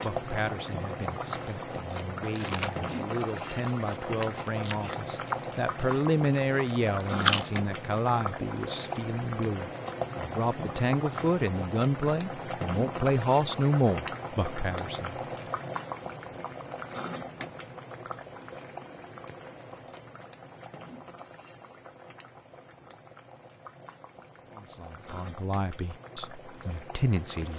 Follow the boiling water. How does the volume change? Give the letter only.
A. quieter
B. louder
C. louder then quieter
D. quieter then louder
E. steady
A.